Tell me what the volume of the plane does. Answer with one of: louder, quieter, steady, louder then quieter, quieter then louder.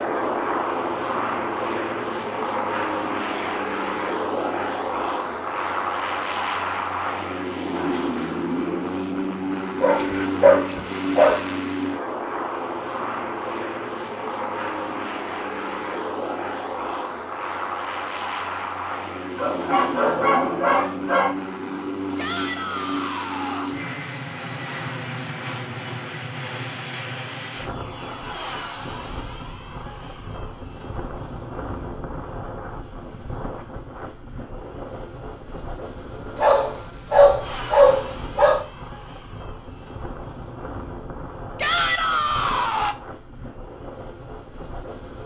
quieter.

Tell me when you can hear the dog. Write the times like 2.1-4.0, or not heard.
9.8-11.5, 19.4-21.4, 36.4-38.6.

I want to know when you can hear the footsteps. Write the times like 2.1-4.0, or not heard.
not heard.